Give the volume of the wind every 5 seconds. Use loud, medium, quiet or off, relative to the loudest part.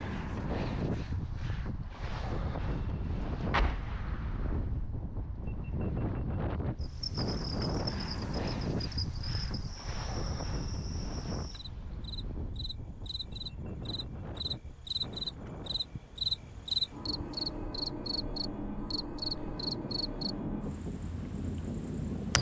loud, loud, medium, medium, loud.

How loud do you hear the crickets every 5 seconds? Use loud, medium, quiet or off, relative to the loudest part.
off, medium, medium, loud, medium.